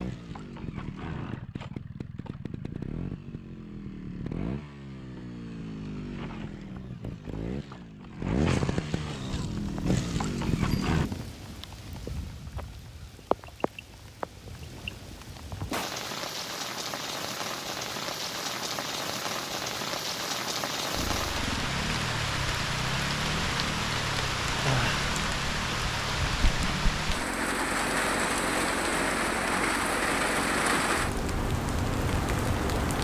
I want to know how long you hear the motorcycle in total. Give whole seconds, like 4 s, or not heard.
23 s.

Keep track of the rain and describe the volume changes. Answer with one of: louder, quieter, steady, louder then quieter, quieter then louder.
louder.